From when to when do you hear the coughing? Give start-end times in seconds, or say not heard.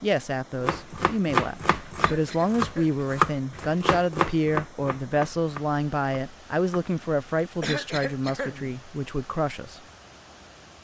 1.9-3.0, 7.6-8.8.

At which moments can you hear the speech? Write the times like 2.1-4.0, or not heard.
0.0-9.8.